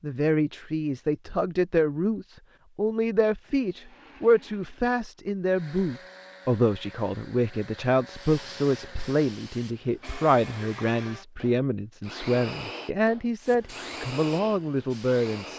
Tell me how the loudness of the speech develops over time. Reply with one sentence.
The volume of the speech stays about the same.